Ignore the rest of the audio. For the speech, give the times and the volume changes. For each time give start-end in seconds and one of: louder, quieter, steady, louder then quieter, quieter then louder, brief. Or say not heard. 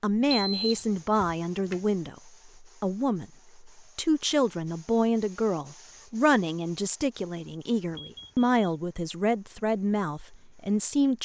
0.0-11.2 steady.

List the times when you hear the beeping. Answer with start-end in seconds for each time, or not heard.
0.3-1.8, 7.8-8.6.